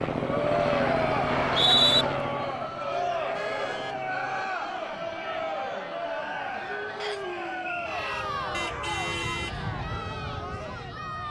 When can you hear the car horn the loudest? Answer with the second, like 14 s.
9 s.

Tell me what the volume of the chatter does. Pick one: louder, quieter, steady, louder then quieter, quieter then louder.
quieter.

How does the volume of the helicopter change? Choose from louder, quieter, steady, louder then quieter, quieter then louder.
quieter.